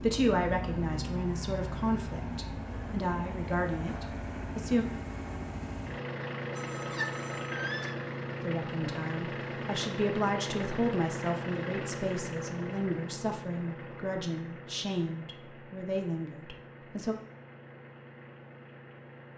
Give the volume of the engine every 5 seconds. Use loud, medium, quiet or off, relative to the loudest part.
loud, loud, loud, quiet.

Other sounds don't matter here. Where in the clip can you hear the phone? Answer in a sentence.
The phone can be heard from 6.5 to 8.0 s.